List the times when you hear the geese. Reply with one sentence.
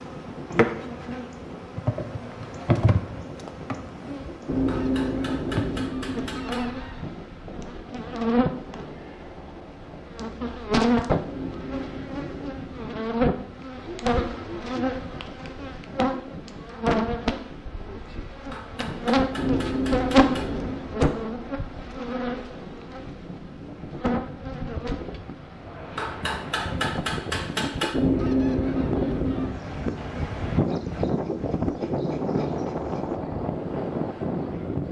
You can hear the geese from 4.5 to 7.0 s, from 11.2 to 13.2 s, from 19.4 to 20.9 s and from 27.9 to 29.5 s.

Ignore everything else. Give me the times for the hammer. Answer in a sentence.
You can hear the hammer from 4.7 to 6.7 s, from 18.5 to 20.5 s and from 25.9 to 27.9 s.